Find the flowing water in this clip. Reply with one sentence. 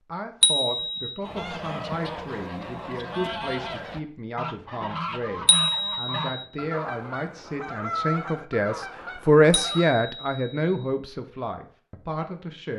You can't hear the flowing water here.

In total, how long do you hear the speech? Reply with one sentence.
You can hear the speech for 13 seconds altogether.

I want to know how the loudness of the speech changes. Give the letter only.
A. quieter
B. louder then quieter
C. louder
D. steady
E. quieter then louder
B.